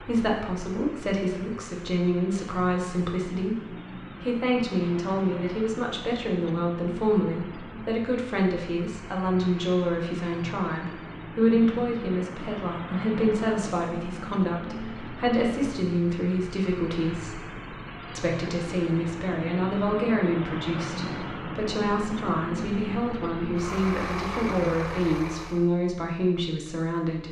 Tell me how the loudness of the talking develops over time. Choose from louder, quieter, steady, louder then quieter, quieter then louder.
steady.